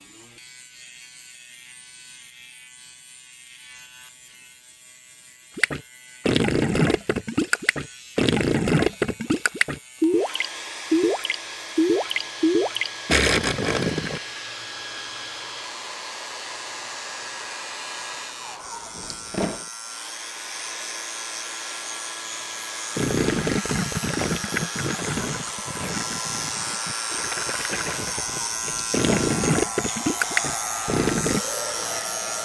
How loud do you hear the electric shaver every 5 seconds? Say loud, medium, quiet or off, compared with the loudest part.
quiet, quiet, quiet, medium, medium, loud, loud.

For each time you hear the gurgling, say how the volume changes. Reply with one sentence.
The gurgling can be heard from 5.5 to 14.2 s, at a steady volume; and from 22.9 to 31.4 s, getting quieter then louder.